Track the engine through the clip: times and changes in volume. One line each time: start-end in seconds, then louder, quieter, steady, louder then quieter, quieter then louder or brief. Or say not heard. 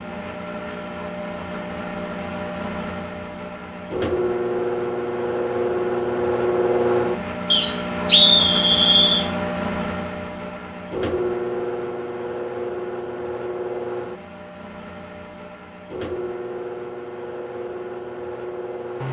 0.0-19.0 louder then quieter.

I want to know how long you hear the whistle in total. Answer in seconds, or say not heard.
2 s.